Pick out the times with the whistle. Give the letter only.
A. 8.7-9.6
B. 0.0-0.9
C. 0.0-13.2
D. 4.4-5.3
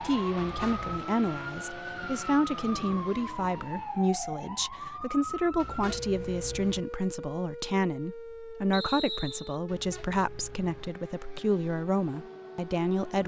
A.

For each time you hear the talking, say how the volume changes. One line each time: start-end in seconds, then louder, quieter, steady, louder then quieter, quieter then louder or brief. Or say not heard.
0.0-13.2 steady.